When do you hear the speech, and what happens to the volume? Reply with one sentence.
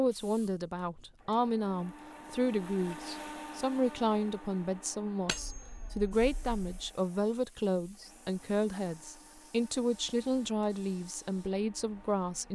You can hear the speech from 0.0 to 12.5 s, at a steady volume.